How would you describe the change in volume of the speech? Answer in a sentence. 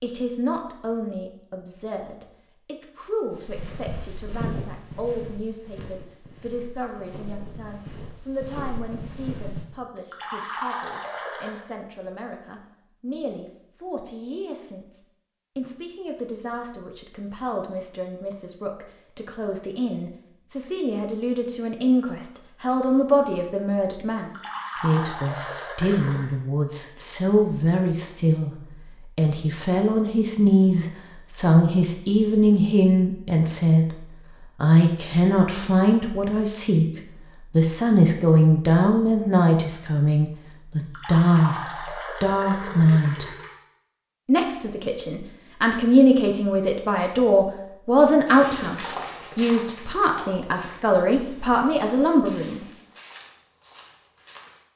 The loudness of the speech goes up.